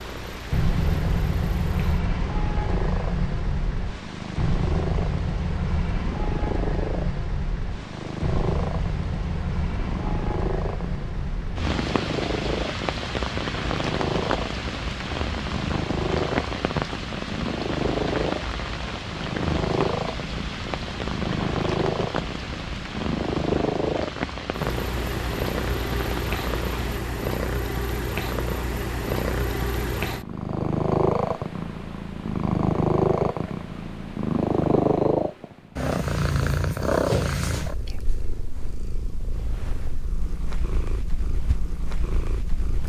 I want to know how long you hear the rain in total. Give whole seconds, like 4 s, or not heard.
27 s.